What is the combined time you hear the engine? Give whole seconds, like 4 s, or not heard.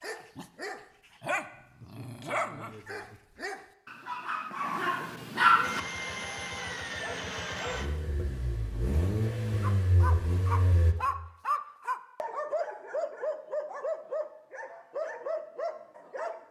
5 s.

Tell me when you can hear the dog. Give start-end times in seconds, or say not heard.
0.0-5.8, 9.6-16.4.